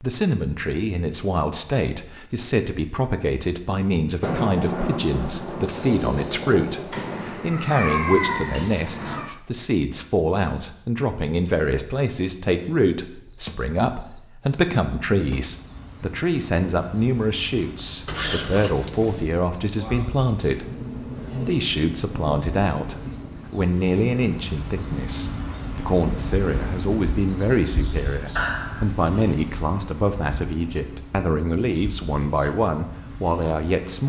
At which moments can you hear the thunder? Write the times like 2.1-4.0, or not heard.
4.2-7.3, 19.8-23.6.